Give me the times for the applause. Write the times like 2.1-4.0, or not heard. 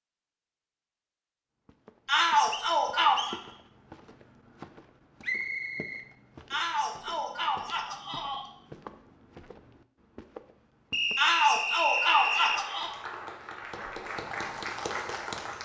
11.8-15.6.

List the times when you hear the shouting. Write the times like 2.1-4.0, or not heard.
2.0-3.4, 6.5-8.5, 11.2-12.9.